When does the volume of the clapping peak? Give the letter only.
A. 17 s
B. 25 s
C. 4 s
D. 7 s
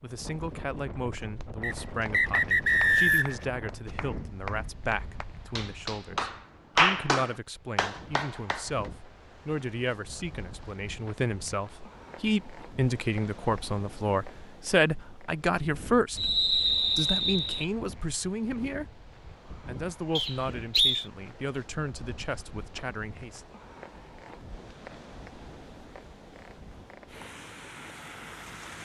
D.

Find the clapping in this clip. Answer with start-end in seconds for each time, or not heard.
1.1-8.9.